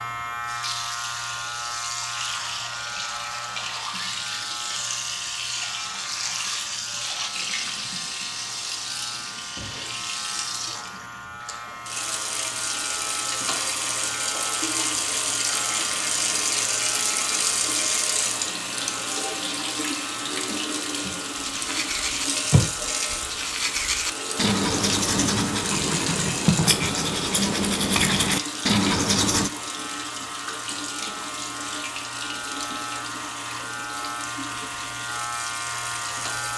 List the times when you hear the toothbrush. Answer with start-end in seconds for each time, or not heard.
21.5-29.5.